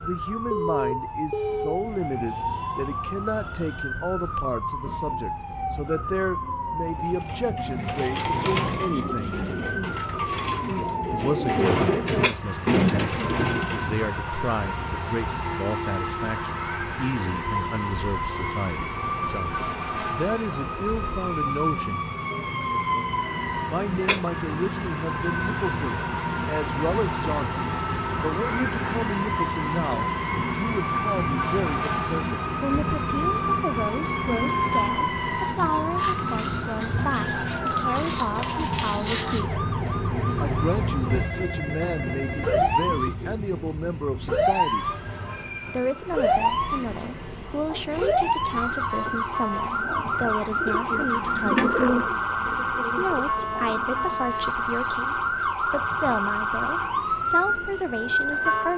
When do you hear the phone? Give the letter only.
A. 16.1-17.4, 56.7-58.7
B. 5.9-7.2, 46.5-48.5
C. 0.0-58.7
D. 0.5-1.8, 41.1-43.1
D.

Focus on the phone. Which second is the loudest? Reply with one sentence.
The loudest moment of the phone is at 1 second.